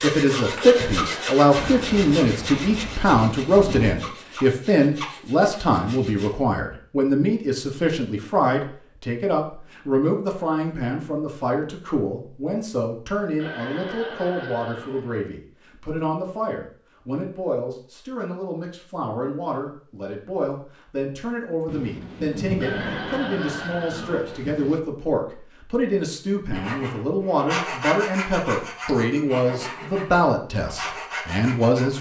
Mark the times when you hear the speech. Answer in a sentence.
You can hear the speech from 0.0 to 31.9 s.